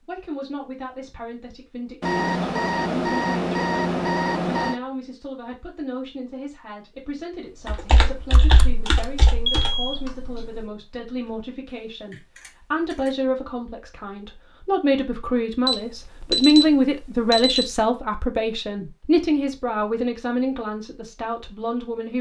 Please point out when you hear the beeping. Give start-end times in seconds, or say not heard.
2.0-4.8, 8.3-9.9, 15.7-17.7.